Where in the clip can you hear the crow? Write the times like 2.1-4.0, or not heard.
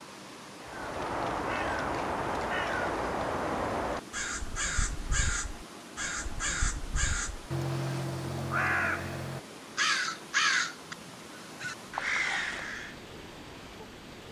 0.6-12.9.